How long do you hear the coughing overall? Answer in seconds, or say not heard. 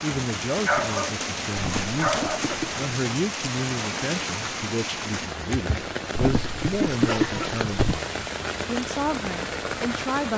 3 s.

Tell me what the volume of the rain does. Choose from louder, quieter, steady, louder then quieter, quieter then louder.
steady.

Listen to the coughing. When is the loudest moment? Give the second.
7 s.